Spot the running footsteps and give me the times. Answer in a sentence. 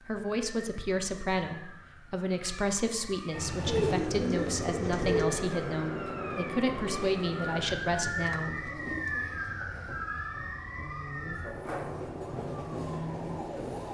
You can't hear the running footsteps here.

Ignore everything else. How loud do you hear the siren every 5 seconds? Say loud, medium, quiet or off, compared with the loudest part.
medium, loud, loud.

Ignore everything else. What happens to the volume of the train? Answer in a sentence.
The volume of the train goes down, then up.